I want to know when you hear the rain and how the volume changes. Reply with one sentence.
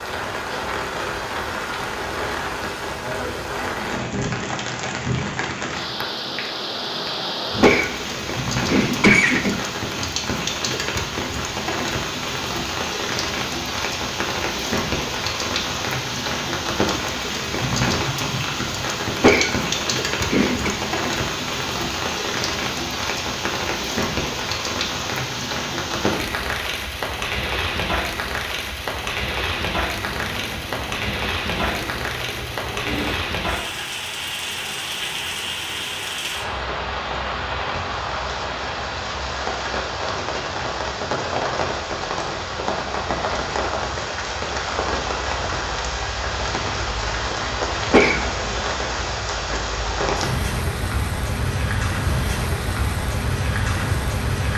You can hear the rain from 0.0 to 54.5 s, at a steady volume.